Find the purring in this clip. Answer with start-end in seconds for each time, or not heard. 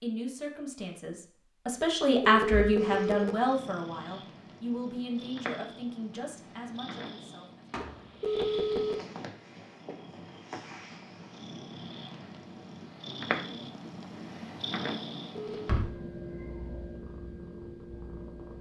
2.8-18.5.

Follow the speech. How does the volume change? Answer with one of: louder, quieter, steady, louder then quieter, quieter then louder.
louder then quieter.